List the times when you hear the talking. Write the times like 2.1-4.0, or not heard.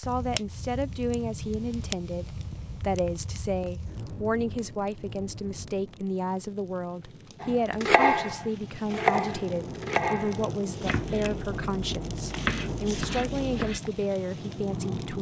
0.0-15.1.